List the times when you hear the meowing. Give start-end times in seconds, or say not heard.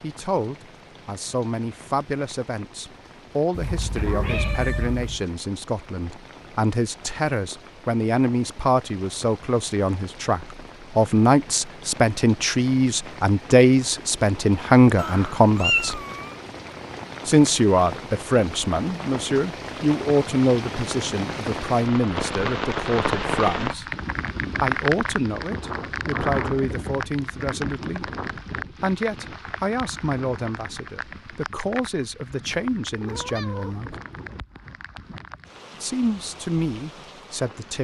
3.5-5.2, 14.9-16.4, 33.0-33.8.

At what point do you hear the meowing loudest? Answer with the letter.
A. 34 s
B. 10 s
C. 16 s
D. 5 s
C.